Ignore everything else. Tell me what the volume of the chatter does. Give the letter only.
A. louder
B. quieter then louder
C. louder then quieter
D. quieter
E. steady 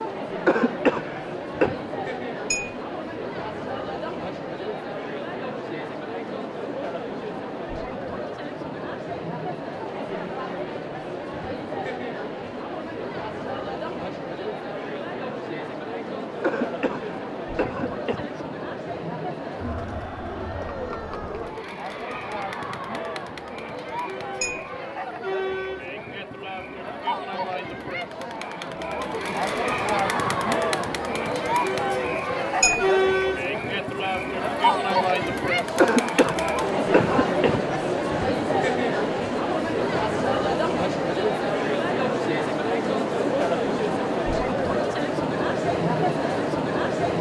A.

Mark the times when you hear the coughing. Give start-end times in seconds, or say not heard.
0.5-1.8, 16.4-18.4, 35.8-37.7.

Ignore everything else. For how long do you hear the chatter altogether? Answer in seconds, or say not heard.
47 s.